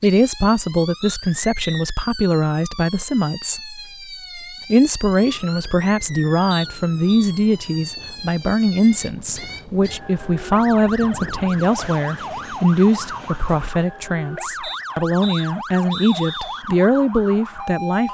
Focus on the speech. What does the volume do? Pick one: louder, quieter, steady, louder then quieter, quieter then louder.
steady.